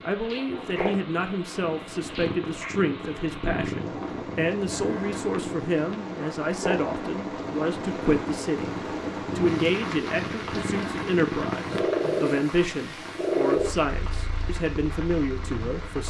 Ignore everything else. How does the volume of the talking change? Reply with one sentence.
The loudness of the talking stays about the same.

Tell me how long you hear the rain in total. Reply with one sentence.
You can hear the rain for 16 seconds altogether.